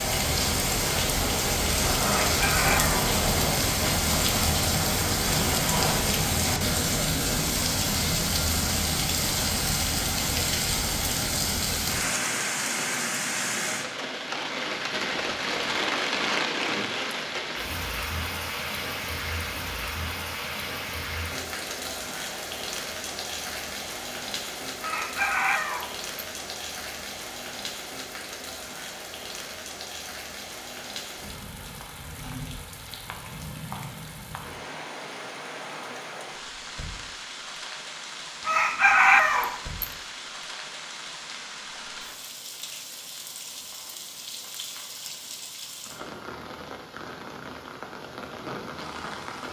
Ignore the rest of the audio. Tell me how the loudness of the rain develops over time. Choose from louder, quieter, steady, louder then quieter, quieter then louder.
quieter.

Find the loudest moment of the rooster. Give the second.
39 s.